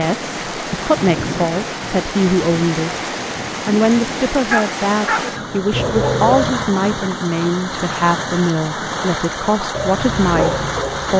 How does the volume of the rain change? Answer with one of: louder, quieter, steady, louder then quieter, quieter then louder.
steady.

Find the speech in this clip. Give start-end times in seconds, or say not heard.
0.0-3.0, 3.6-11.1.